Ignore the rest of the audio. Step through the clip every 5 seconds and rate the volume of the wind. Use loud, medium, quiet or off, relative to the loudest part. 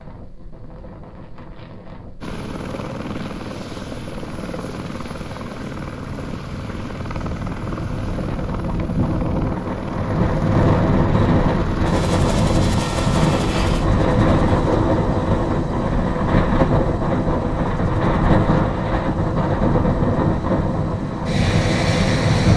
quiet, medium, loud, loud, loud.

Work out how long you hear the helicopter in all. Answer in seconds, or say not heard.
20 s.